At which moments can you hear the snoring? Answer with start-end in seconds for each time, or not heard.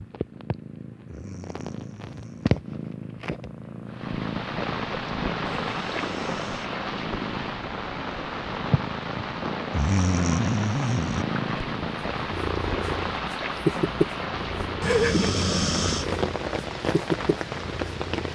1.1-2.5, 5.5-6.8, 9.7-11.2, 14.8-16.1.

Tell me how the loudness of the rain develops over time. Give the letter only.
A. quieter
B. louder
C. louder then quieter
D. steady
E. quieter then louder
D.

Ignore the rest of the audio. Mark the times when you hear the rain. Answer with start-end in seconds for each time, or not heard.
3.9-18.3.